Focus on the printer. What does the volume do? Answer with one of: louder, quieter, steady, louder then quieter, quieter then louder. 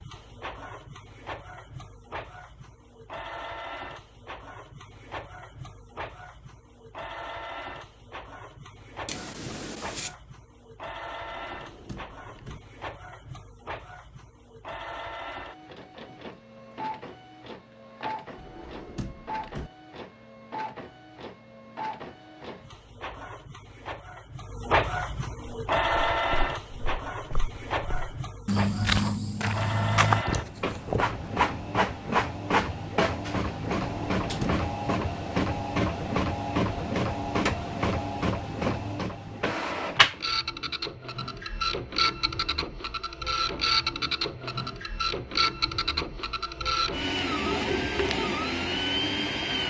louder.